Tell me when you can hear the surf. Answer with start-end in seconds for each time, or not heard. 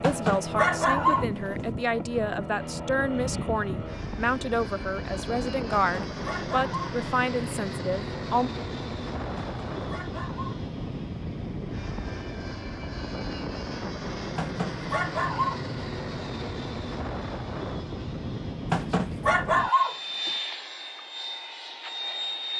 not heard.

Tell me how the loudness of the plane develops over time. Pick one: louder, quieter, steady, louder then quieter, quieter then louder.
steady.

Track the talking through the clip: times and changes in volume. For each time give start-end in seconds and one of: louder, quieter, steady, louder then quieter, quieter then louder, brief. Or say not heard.
0.0-8.5 steady.